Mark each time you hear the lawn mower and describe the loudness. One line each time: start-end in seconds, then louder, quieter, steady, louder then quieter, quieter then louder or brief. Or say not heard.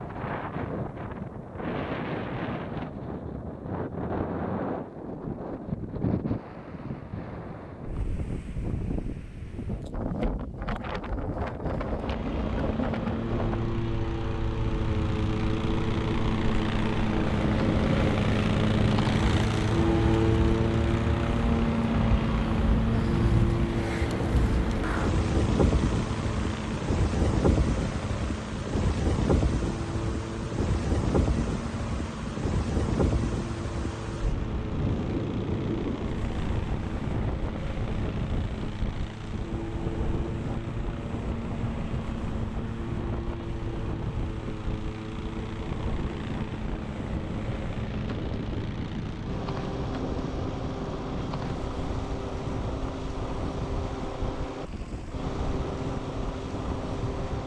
11.8-57.4 quieter.